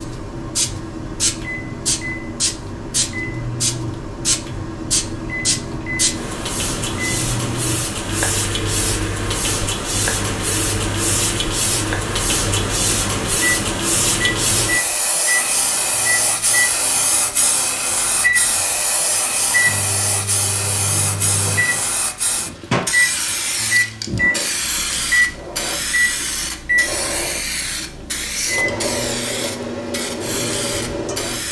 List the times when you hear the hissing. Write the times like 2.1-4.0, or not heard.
0.0-31.4.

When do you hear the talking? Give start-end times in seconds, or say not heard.
not heard.